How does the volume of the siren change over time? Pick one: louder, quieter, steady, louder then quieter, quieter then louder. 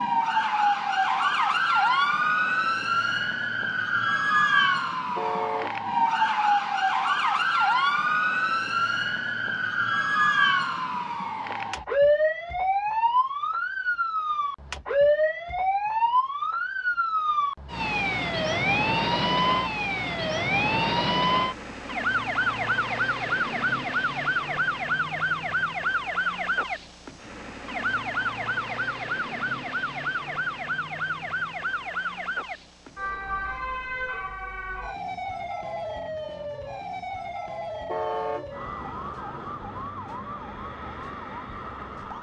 quieter.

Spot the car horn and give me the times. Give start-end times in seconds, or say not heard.
5.2-5.8, 37.9-38.5.